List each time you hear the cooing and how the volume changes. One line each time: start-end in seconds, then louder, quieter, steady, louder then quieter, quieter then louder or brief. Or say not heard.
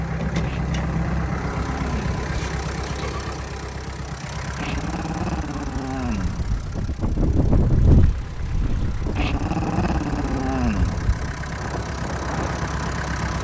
not heard.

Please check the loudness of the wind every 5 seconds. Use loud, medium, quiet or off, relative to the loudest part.
off, loud, medium.